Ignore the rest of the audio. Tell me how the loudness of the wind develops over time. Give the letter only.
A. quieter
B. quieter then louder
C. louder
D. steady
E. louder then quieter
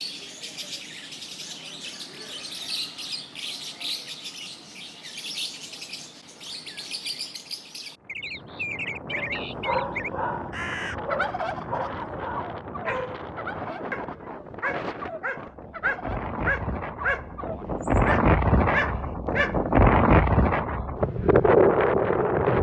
C.